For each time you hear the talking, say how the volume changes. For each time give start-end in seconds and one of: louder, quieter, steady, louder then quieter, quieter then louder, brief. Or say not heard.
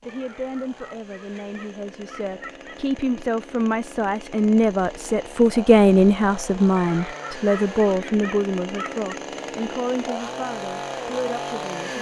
0.0-11.9 louder then quieter.